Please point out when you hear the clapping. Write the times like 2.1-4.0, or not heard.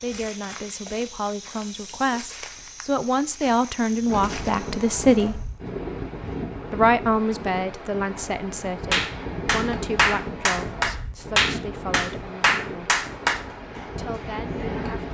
8.9-15.0.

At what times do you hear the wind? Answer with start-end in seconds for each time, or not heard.
4.0-15.0.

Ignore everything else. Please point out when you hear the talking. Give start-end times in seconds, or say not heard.
0.0-5.5, 6.7-12.9, 13.9-15.0.